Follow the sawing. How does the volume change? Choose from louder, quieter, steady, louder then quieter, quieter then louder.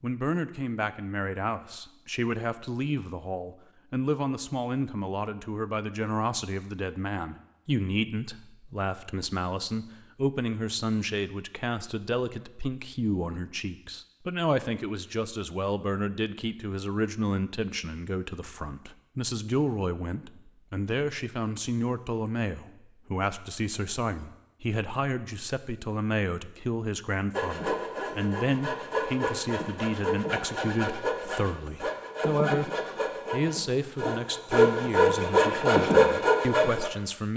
louder.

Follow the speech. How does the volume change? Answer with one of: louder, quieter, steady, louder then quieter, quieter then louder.
steady.